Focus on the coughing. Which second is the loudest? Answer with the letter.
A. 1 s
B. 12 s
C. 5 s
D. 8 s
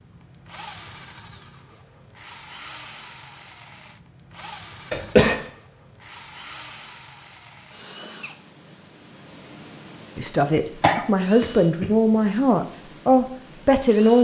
C.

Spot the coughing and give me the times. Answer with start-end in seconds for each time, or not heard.
4.9-5.4, 10.8-11.9.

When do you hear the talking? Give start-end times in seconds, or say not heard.
10.2-14.1.